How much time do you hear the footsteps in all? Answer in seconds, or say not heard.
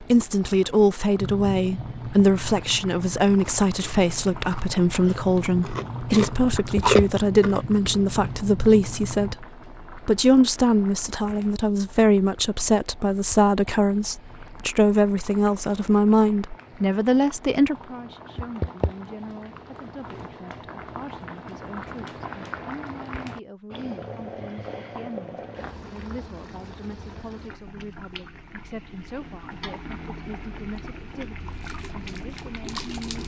not heard.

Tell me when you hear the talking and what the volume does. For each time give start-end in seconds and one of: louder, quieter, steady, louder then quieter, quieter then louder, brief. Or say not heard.
0.0-33.2 quieter.